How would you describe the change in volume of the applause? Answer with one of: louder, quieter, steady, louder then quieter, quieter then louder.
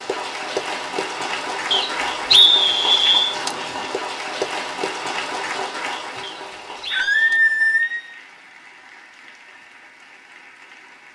quieter.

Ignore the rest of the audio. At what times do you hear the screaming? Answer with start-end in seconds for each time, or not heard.
6.9-8.2.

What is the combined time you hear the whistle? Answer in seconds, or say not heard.
3 s.